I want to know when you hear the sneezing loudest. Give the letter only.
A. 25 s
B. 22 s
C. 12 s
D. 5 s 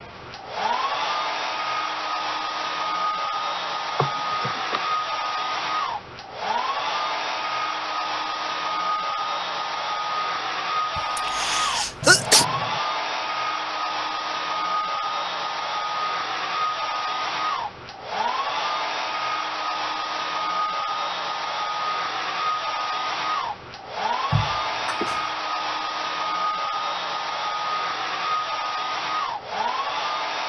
C.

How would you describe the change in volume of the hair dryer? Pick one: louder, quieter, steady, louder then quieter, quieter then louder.
steady.